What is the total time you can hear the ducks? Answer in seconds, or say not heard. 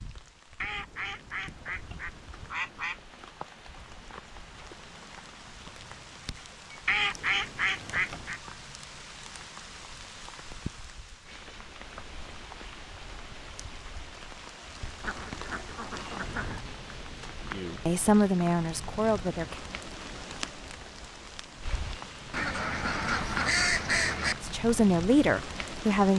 8 s.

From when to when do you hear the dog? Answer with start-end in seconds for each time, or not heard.
not heard.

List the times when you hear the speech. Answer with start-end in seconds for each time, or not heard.
17.5-19.6, 24.4-26.1.